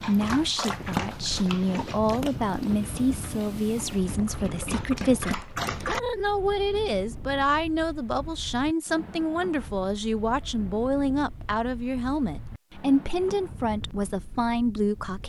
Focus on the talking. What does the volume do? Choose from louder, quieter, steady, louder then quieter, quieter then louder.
steady.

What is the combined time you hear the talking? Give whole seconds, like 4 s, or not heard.
15 s.